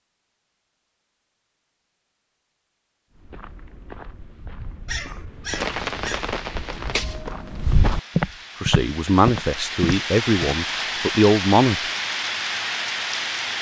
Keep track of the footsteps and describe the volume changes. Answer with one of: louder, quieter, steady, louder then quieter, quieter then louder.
louder.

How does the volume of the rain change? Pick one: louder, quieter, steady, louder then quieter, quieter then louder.
quieter then louder.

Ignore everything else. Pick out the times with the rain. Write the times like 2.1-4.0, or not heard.
5.5-13.5.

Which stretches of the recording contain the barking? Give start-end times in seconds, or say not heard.
4.8-6.3.